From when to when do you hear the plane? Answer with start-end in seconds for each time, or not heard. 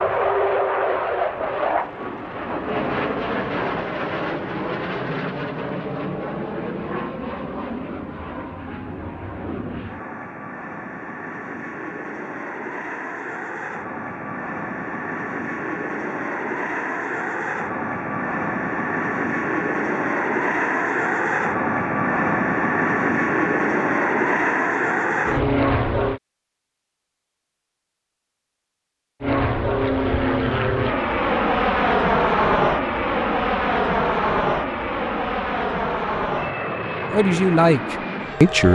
0.0-26.2, 29.2-38.6.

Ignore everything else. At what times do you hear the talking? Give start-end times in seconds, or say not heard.
37.1-38.6.